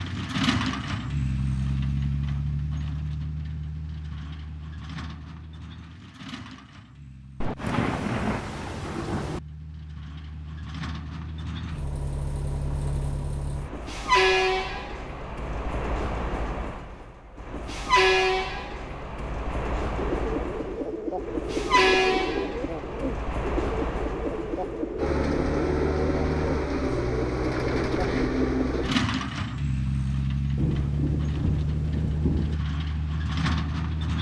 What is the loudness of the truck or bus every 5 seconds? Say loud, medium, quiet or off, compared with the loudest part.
loud, quiet, loud, loud, loud, loud, loud.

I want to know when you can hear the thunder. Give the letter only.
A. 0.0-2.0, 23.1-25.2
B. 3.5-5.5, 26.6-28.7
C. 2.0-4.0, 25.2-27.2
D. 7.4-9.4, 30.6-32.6
D.